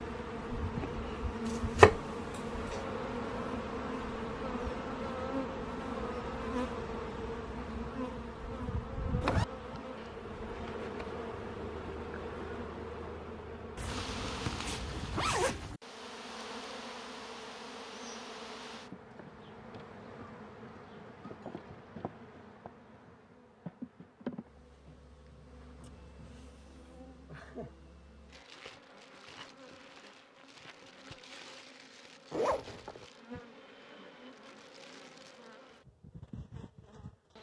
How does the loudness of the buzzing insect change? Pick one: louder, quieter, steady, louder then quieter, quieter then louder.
quieter.